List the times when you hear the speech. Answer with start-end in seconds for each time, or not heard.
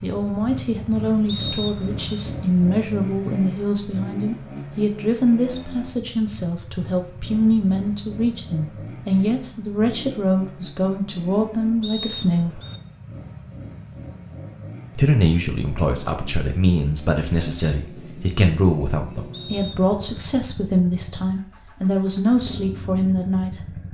0.0-12.6, 14.9-23.8.